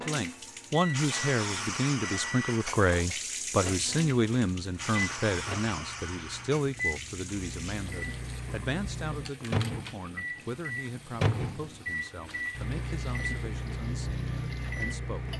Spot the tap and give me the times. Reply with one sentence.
The tap can be heard from 0.0 to 15.3 s.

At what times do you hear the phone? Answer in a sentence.
You can't hear the phone here.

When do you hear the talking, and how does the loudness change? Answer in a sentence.
You can hear the talking from 0.0 to 15.3 s, getting quieter.